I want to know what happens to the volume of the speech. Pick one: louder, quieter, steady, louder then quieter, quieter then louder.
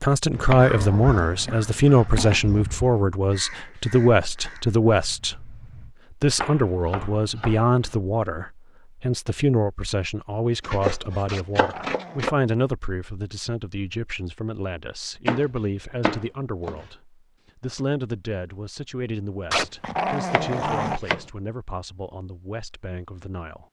quieter.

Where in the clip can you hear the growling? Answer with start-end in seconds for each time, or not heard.
0.6-2.6, 11.2-12.3, 19.5-21.0.